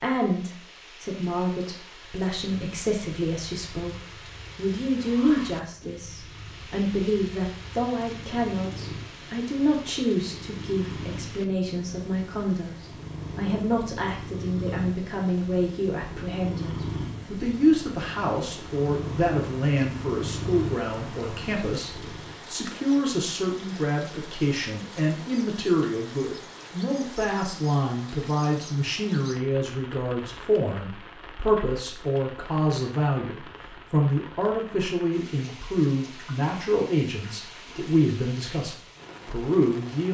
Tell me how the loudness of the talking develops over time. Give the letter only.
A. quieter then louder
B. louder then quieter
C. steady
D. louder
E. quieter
C.